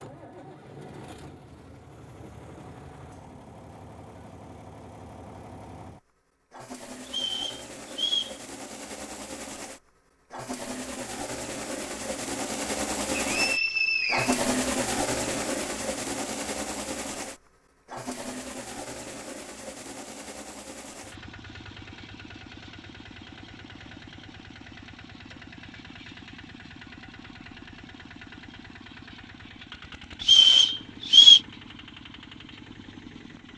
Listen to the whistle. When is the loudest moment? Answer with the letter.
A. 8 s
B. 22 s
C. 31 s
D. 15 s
C.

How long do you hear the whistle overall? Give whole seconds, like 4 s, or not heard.
4 s.